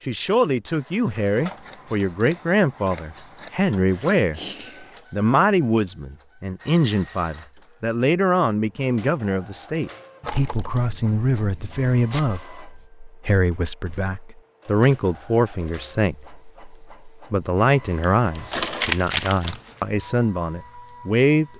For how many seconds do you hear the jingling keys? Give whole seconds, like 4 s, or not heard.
4 s.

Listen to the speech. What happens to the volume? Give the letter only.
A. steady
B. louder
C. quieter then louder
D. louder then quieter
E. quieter
A.